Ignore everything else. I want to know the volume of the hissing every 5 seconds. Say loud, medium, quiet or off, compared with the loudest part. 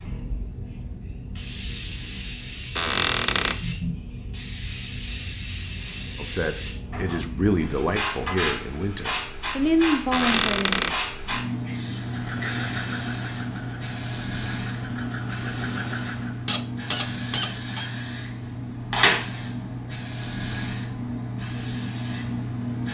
medium, loud, loud, loud, loud.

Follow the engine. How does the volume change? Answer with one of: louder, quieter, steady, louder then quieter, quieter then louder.
quieter then louder.